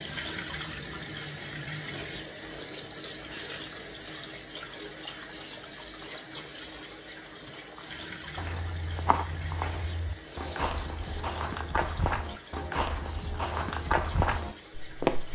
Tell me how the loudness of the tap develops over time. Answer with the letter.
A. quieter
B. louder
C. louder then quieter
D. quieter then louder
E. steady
A.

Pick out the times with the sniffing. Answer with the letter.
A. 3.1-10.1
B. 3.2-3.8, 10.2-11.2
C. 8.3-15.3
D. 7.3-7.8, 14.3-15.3
B.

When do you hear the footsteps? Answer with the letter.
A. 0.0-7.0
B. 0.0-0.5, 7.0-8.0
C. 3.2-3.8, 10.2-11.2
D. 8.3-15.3
D.